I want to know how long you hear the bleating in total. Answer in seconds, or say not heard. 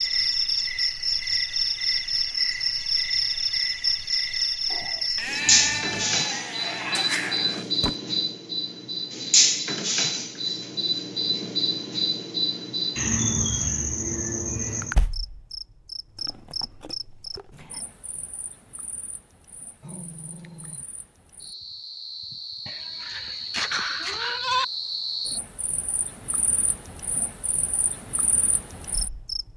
5 s.